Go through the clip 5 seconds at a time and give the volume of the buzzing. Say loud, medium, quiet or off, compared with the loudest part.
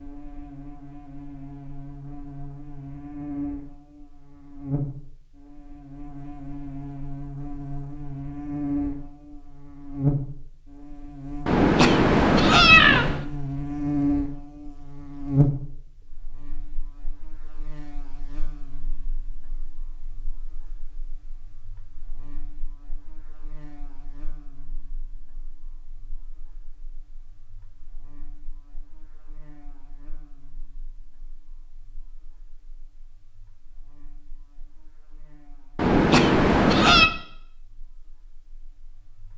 medium, medium, loud, loud, quiet, quiet, quiet, quiet.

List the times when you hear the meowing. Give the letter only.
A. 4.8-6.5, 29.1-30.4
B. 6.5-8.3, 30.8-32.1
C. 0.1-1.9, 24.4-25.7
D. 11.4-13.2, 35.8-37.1
D.